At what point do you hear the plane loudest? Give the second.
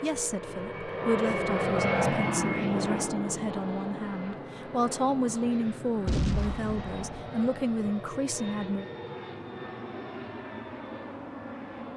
2 s.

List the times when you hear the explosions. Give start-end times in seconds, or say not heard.
6.0-7.3.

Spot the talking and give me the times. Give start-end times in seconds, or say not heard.
0.0-8.8.